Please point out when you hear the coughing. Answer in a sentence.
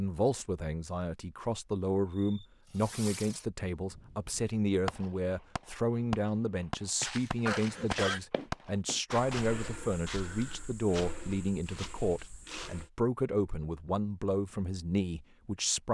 You can hear the coughing from 7.5 to 8.2 s.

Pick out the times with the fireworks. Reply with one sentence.
The fireworks can be heard from 2.2 to 10.0 s.